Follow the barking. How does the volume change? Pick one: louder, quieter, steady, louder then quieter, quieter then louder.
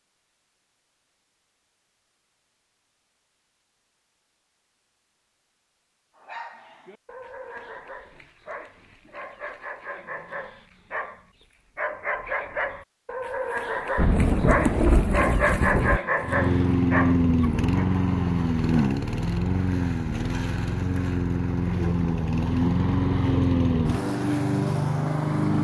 louder.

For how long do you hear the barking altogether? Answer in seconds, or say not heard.
12 s.